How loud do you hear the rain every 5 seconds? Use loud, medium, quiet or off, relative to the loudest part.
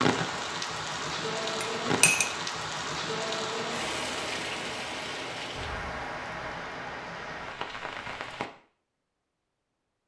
loud, medium.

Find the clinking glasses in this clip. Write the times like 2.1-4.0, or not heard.
1.6-2.3.